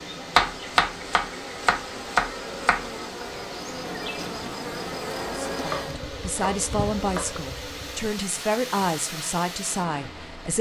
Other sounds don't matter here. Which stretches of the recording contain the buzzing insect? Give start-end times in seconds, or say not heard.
0.0-8.1.